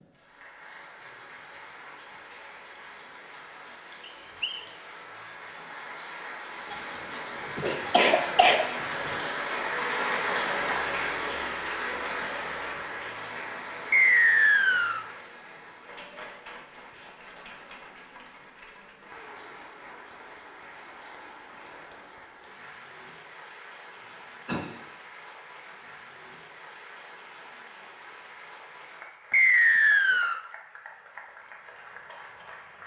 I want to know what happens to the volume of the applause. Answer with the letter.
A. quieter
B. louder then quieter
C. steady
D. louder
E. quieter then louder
B.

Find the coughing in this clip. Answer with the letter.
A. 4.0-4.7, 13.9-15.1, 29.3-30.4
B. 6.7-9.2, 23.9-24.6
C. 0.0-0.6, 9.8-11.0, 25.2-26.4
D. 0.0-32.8
B.